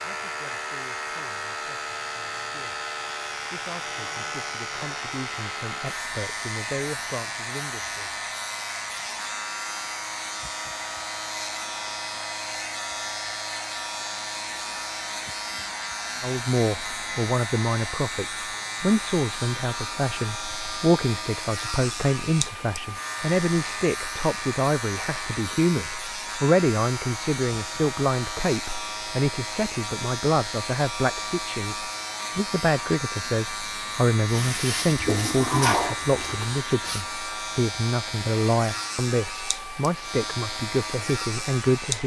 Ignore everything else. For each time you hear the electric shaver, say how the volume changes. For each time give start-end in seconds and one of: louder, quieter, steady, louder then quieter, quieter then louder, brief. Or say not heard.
0.0-42.0 steady.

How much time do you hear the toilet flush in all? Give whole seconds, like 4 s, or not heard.
3 s.